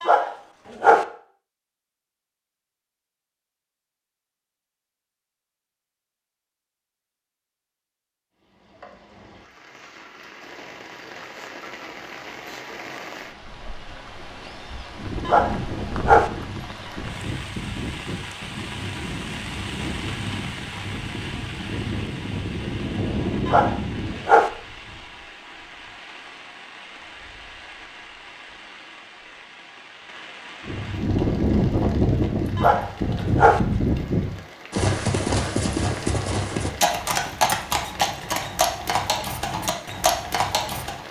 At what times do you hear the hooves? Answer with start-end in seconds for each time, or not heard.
14.8-24.2, 30.6-41.0.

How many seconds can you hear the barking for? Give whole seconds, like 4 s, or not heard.
4 s.